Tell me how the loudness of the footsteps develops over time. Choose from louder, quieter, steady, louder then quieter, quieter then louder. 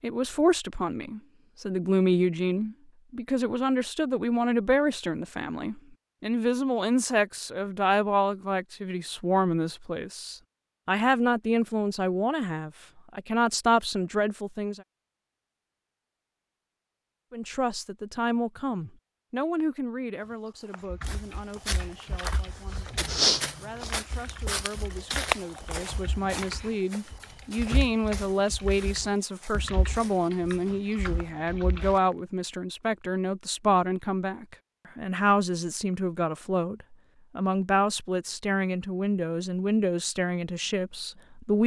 louder then quieter.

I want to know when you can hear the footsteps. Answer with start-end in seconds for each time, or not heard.
20.2-32.1.